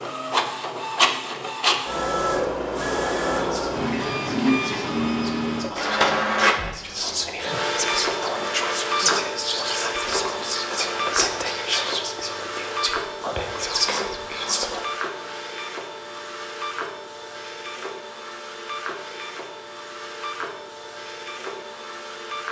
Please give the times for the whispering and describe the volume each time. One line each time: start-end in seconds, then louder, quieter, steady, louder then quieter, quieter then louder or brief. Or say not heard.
3.4-14.8 louder.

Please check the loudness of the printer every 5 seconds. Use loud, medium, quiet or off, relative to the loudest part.
loud, loud, medium, medium, medium.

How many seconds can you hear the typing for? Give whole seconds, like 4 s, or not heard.
not heard.